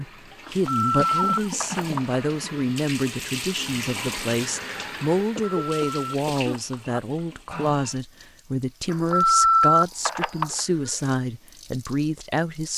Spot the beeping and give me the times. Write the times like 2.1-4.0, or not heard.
0.5-2.2, 5.4-7.0, 8.9-10.6.